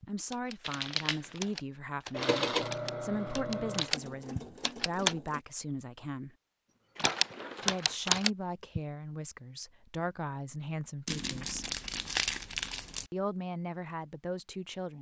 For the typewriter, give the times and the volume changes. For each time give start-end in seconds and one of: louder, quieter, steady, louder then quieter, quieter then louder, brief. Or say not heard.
0.0-5.2 louder
7.0-8.8 brief.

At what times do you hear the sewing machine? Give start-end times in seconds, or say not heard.
2.1-5.5.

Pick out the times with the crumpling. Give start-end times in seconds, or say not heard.
0.6-1.4, 7.0-8.1, 11.1-13.1.